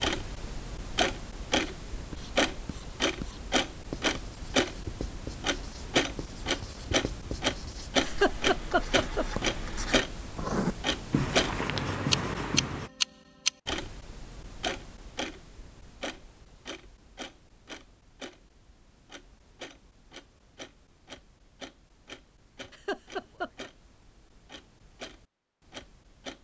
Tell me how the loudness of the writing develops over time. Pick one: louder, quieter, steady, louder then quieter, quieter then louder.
louder.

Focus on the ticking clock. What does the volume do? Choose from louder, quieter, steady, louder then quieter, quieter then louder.
quieter.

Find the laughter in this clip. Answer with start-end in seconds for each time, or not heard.
8.1-9.2, 22.7-23.7.